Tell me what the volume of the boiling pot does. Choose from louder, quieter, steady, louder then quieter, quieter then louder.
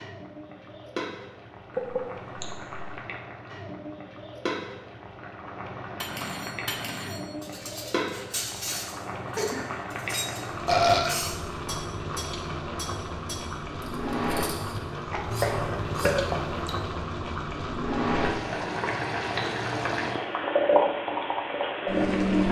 louder.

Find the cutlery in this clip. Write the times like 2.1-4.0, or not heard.
6.0-16.8.